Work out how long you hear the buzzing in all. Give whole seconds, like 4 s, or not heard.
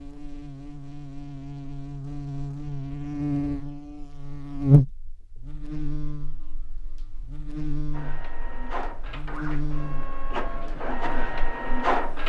12 s.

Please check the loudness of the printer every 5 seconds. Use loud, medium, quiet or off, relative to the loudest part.
off, medium, loud.